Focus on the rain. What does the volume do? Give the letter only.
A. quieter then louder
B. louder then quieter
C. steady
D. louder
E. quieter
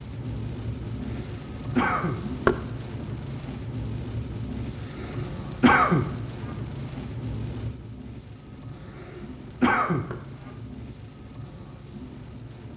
E.